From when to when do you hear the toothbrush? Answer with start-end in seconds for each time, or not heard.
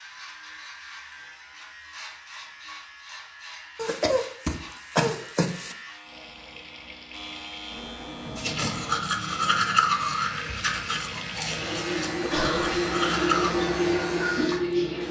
8.3-13.6.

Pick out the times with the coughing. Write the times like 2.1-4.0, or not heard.
3.8-5.8, 12.3-12.8.